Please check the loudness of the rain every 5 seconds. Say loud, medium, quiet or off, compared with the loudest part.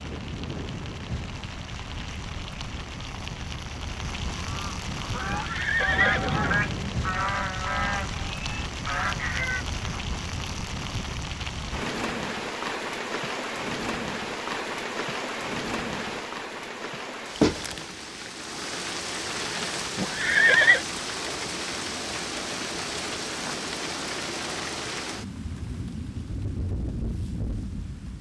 medium, loud, loud, loud, loud, medium.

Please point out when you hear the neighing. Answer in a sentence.
The neighing can be heard from 5.2 to 7.0 s and from 19.9 to 20.8 s.